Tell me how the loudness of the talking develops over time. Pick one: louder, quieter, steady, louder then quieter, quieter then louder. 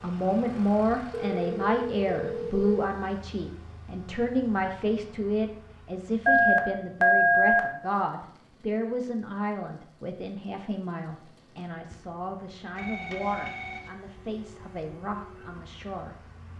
quieter.